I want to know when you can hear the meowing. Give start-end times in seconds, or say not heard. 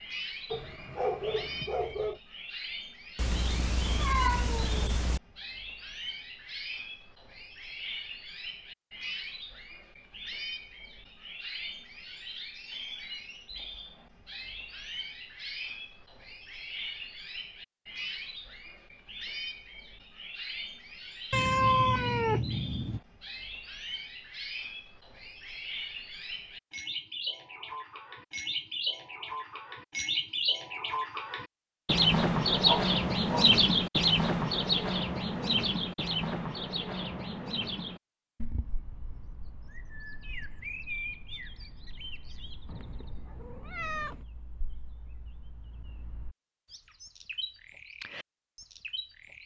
3.1-5.2, 21.3-23.0, 42.6-44.2.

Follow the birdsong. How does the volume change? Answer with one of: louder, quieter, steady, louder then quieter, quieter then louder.
louder then quieter.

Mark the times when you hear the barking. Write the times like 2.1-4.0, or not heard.
0.5-2.2, 32.5-33.5.